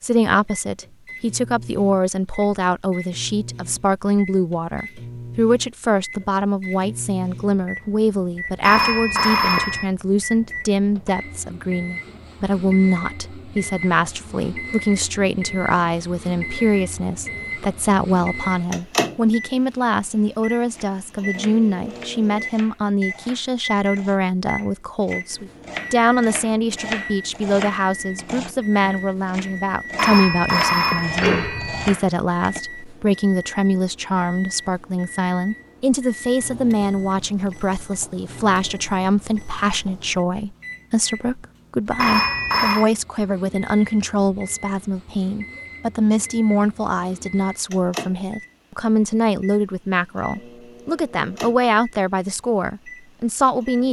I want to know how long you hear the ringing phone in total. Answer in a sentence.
The ringing phone can be heard for 4 seconds in total.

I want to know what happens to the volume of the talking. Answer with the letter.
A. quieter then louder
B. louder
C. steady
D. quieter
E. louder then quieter
C.